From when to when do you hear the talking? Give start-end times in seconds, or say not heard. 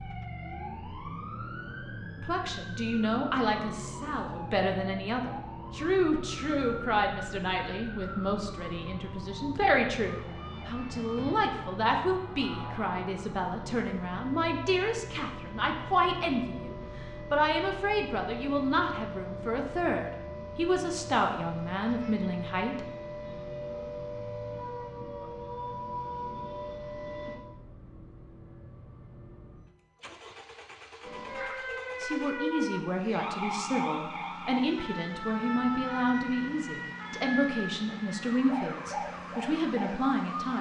2.1-22.9, 32.0-40.5.